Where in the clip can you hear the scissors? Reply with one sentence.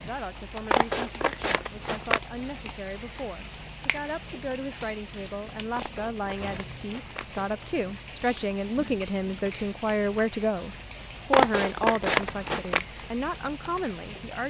The scissors can be heard from 0.7 to 2.2 s, from 5.8 to 7.5 s and from 11.3 to 12.8 s.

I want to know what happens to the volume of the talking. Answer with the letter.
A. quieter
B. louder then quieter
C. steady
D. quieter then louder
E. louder
E.